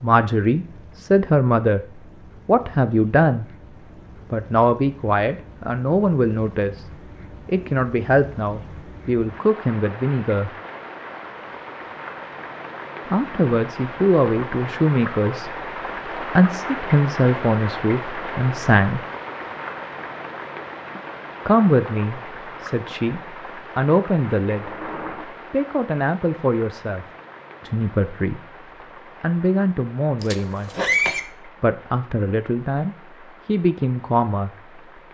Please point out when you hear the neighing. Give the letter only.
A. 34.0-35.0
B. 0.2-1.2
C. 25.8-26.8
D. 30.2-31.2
D.